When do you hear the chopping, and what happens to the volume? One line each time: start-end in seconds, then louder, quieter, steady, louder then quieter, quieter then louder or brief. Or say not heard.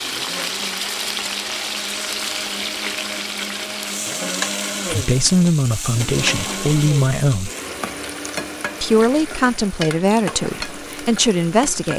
not heard.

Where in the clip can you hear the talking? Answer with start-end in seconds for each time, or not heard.
4.9-7.5, 8.8-11.9.